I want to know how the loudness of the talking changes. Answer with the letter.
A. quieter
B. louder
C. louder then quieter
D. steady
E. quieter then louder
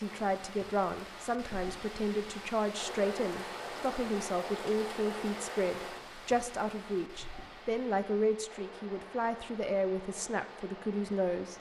D.